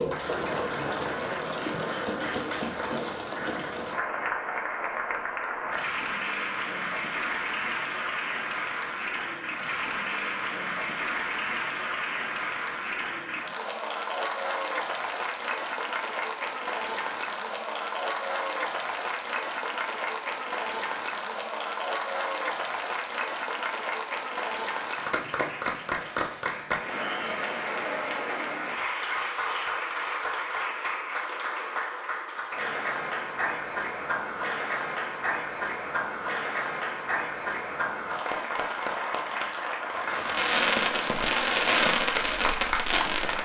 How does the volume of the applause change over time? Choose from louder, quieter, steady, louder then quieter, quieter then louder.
steady.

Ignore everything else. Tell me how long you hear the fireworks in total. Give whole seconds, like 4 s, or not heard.
3 s.